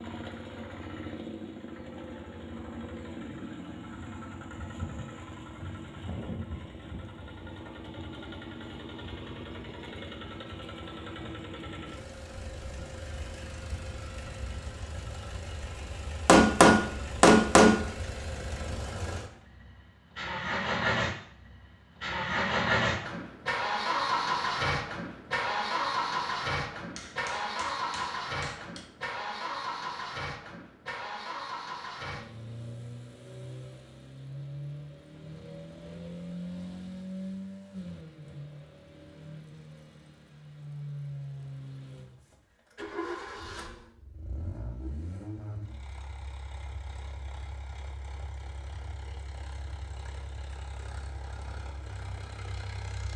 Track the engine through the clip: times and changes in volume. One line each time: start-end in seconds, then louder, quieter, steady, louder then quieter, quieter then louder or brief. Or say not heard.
0.0-53.1 louder then quieter.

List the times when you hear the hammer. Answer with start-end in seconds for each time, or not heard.
16.2-17.8, 26.9-28.9.